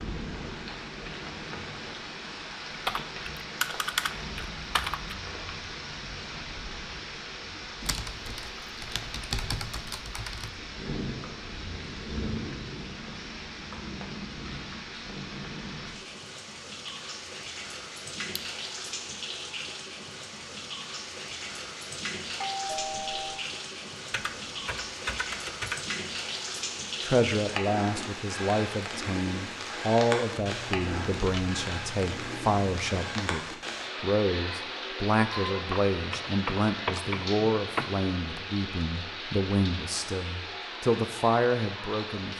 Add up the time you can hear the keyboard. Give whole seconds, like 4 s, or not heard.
12 s.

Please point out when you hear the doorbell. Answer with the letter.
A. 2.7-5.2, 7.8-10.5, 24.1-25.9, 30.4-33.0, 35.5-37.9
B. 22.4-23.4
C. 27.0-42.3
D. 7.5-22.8
B.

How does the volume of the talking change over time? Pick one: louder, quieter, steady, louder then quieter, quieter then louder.
steady.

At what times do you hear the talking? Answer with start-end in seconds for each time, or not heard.
27.0-42.3.